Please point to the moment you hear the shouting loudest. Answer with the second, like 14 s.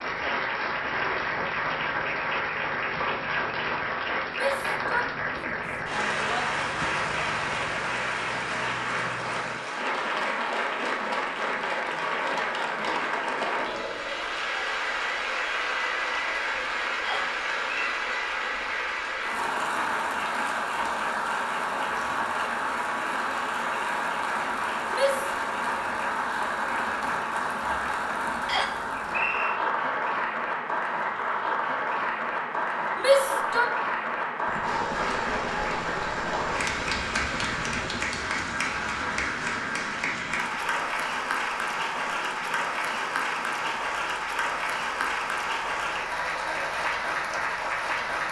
33 s.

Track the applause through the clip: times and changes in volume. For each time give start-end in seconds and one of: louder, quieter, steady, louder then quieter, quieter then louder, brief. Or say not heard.
0.0-48.2 steady.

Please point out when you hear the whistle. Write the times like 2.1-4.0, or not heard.
17.0-17.9, 28.4-29.6.